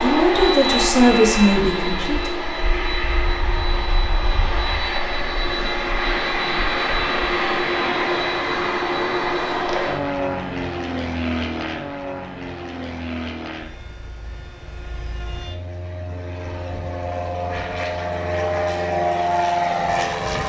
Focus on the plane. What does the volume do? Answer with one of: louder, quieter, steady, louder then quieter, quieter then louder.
quieter then louder.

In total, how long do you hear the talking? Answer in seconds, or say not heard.
2 s.